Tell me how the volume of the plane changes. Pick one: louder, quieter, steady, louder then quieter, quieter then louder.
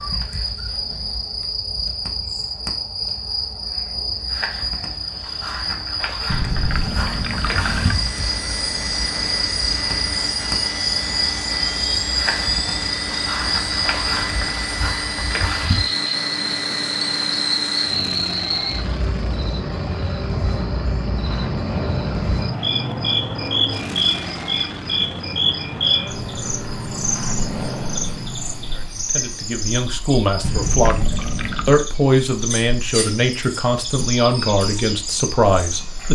steady.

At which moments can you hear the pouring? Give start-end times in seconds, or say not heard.
6.2-8.0, 30.4-31.9.